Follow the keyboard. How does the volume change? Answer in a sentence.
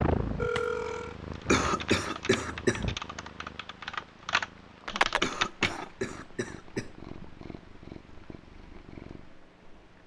The volume of the keyboard goes up.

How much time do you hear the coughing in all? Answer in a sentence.
The coughing can be heard for 3 seconds in total.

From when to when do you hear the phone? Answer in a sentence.
You can hear the phone from 0.3 to 1.1 s.